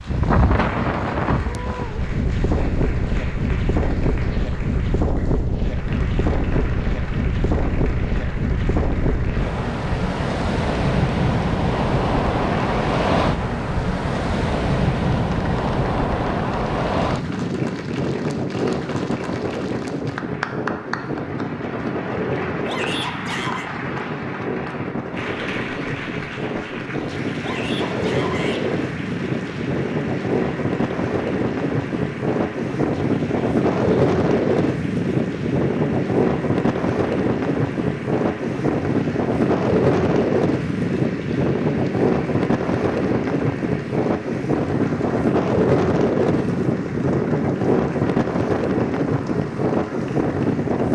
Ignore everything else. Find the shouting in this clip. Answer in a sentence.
You can hear the shouting from 22.6 to 23.6 s and from 27.4 to 28.6 s.